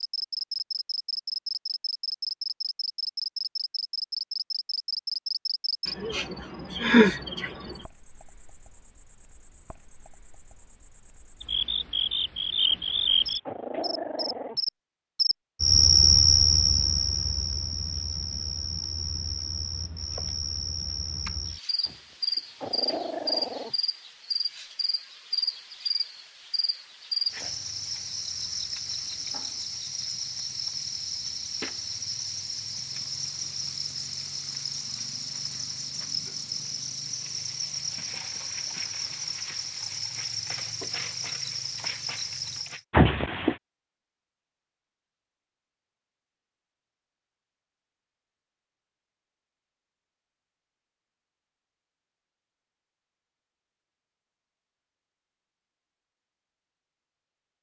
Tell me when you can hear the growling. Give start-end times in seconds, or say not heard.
12.7-14.6, 21.9-23.8, 42.9-43.5.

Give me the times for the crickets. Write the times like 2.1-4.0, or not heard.
0.0-42.8.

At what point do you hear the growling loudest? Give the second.
43 s.